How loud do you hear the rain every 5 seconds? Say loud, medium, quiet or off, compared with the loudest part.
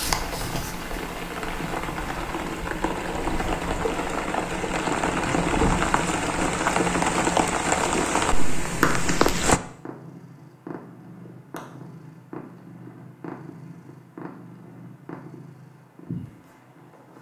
medium, loud, off, off.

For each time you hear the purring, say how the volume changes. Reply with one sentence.
The purring can be heard from 0.0 to 17.1 s, getting louder then quieter.